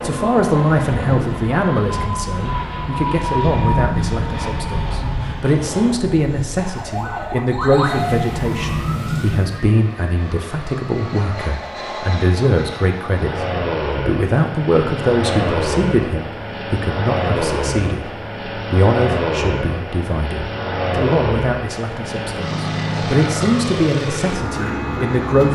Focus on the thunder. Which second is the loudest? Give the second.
4 s.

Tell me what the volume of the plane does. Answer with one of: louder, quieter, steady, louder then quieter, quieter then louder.
quieter then louder.